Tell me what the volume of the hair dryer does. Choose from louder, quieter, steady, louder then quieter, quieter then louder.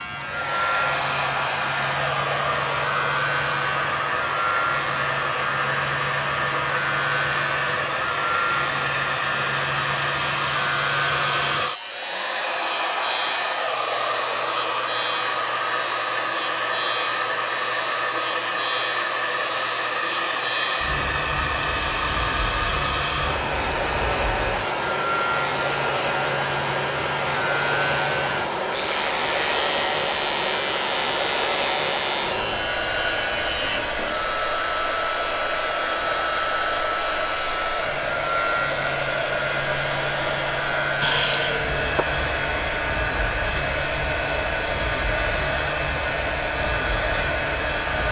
steady.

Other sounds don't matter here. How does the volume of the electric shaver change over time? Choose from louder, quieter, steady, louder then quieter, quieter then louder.
steady.